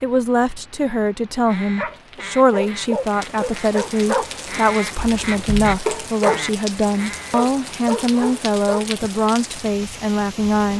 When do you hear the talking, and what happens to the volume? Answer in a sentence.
The talking can be heard from 0.0 to 10.7 s, at a steady volume.